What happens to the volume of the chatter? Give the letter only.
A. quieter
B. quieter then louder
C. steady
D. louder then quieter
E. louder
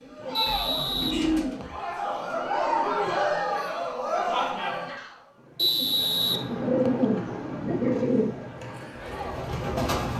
D.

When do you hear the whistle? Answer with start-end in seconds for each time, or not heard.
0.3-1.8, 5.5-7.0.